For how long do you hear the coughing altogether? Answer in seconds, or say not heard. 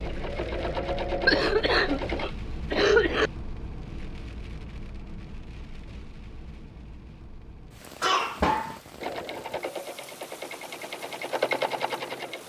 3 s.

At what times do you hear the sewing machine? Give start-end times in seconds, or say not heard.
0.0-2.3, 9.0-12.4.